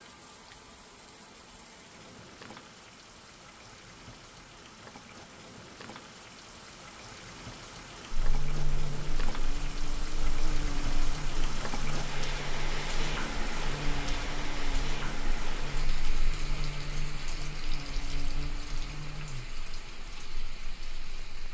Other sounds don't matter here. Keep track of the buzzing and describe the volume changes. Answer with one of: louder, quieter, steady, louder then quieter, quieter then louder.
steady.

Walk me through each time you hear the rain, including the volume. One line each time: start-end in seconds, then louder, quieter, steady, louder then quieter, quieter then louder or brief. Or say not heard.
0.0-21.4 louder then quieter.